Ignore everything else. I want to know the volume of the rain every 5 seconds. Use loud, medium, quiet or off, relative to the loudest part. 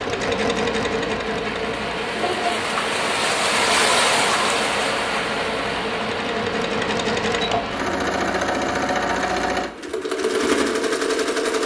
loud, medium, off.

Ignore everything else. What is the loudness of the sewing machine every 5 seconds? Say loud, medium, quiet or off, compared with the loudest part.
medium, loud, loud.